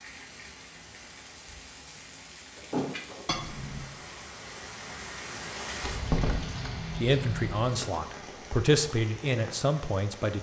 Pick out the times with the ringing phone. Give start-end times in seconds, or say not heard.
3.2-3.9.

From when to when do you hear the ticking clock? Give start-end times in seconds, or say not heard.
not heard.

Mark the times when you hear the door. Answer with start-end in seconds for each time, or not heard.
2.5-3.2, 5.8-6.7.